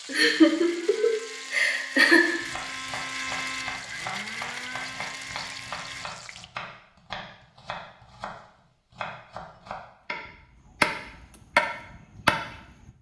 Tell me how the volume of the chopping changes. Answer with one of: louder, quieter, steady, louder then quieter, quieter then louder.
louder.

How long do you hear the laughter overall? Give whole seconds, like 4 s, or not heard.
2 s.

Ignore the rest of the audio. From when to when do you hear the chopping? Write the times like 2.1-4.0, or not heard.
2.4-12.9.